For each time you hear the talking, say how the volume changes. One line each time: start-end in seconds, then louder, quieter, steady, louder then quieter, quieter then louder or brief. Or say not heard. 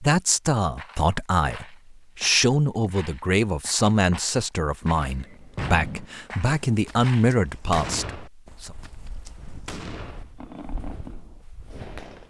0.0-8.8 steady.